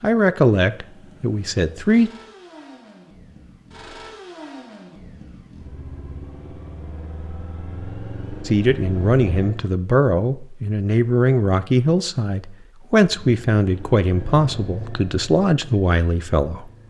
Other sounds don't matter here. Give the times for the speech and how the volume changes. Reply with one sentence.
You can hear the speech briefly from 0.0 to 2.1 s; and from 8.4 to 16.7 s, at a steady volume.